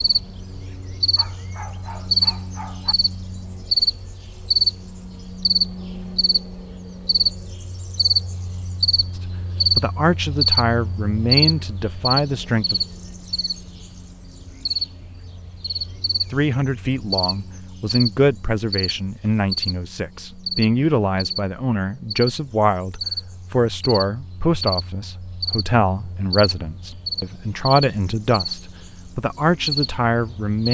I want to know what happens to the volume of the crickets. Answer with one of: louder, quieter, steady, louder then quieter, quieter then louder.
quieter.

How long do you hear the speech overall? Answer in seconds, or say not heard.
18 s.